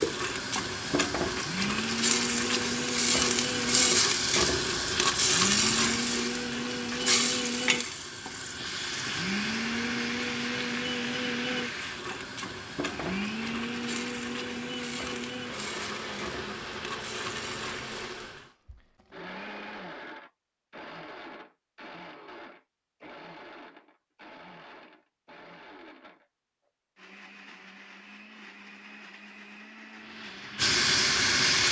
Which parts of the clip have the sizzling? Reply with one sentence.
The sizzling can be heard from 0.0 to 18.5 s and from 29.9 to 31.6 s.